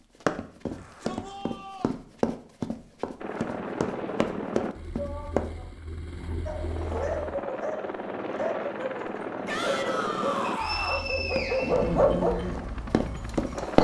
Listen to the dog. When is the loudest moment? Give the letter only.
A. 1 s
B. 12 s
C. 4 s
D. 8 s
B.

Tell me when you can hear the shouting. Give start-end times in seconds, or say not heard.
0.7-1.9, 5.0-5.7, 9.4-11.1.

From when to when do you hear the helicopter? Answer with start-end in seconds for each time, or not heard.
3.2-13.7.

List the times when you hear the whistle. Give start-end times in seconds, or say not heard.
10.4-11.9.